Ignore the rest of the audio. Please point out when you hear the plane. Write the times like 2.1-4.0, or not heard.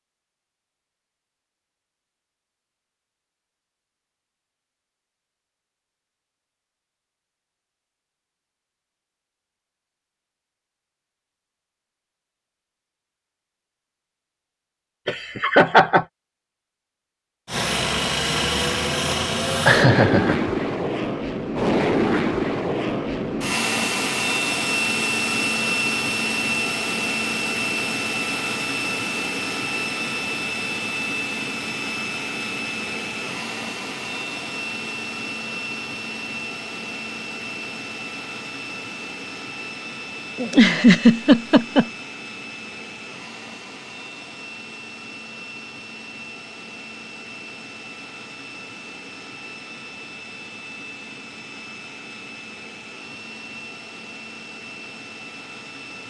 17.4-56.0.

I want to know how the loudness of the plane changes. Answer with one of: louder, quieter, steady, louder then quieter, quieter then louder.
quieter.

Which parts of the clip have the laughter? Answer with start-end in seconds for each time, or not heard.
15.1-16.1, 19.6-20.4, 40.4-41.9.